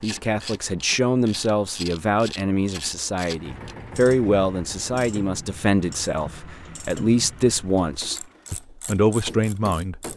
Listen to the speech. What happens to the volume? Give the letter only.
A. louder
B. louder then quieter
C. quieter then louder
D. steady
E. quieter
D.